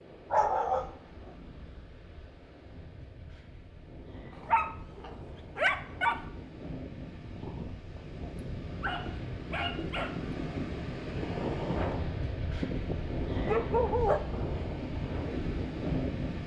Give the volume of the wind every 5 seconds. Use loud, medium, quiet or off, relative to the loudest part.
quiet, medium, loud, loud.